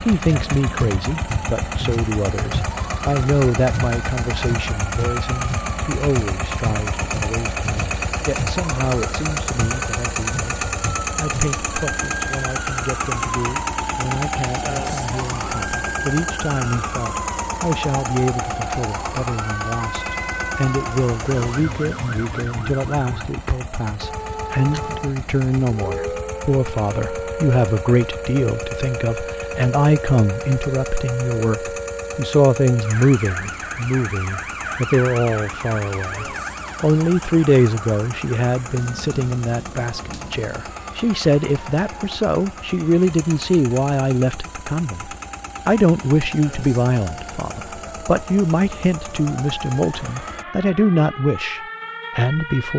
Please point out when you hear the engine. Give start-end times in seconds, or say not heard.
0.0-50.5.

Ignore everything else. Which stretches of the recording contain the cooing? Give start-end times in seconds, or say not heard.
not heard.